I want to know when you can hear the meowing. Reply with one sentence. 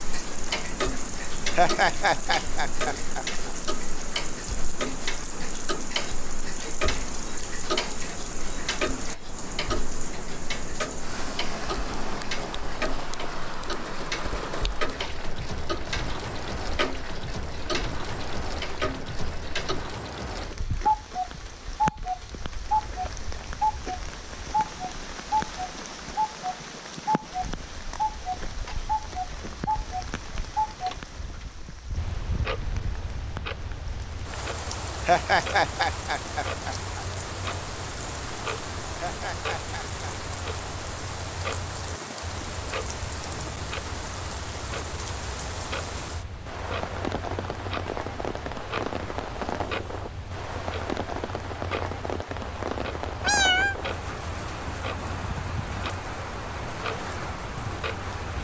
The meowing can be heard from 53.2 to 53.8 s.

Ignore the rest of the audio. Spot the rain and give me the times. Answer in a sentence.
You can hear the rain from 0.0 to 58.3 s.